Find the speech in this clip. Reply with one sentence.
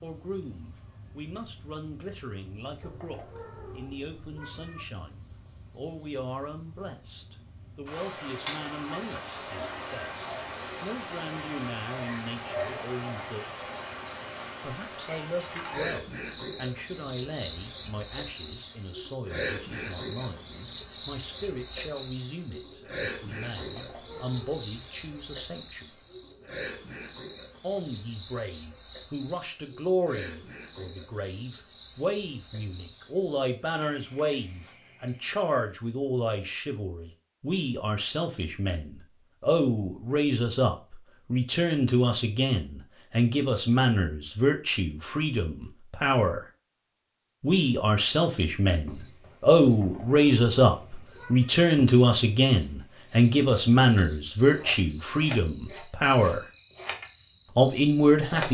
You can hear the speech from 0.0 to 13.4 s, from 14.6 to 25.9 s, from 27.6 to 46.4 s, from 47.4 to 56.4 s and from 57.5 to 58.5 s.